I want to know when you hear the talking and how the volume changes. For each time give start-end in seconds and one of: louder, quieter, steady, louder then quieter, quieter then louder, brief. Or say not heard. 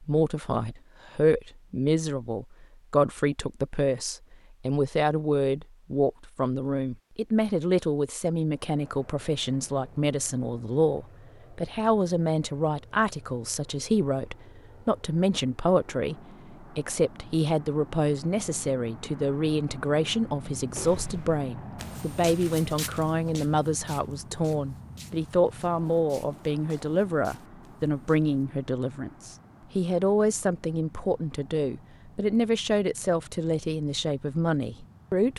0.0-35.3 steady.